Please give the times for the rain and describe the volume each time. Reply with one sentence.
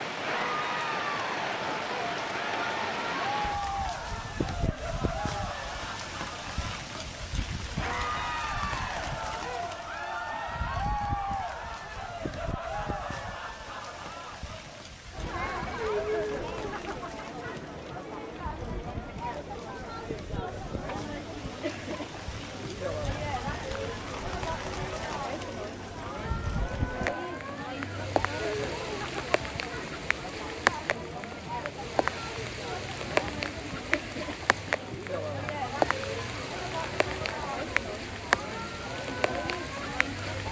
You can hear the rain from 0.0 to 40.4 s, getting quieter then louder.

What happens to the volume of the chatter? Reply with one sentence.
The loudness of the chatter stays about the same.